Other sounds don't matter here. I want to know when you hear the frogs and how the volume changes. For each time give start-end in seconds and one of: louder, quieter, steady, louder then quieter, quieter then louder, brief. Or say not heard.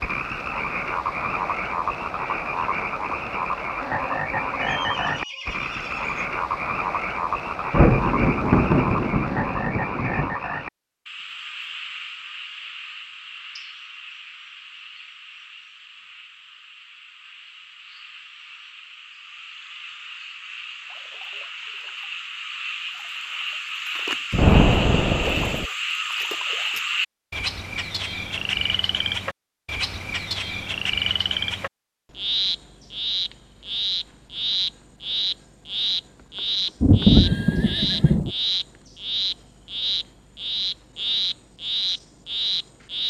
0.0-43.0 quieter then louder.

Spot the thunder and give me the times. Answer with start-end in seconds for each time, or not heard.
7.7-10.3, 24.3-25.6, 36.8-38.3.